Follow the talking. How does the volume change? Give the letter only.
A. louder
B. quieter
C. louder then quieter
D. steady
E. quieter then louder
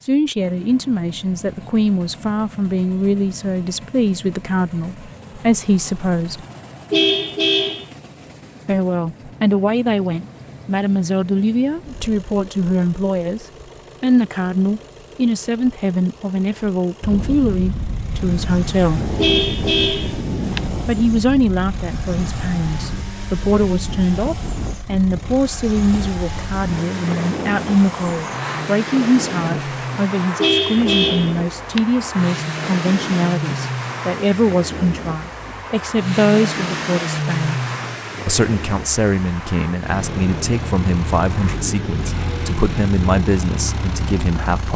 D.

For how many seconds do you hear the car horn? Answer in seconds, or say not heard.
4 s.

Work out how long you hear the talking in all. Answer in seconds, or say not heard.
40 s.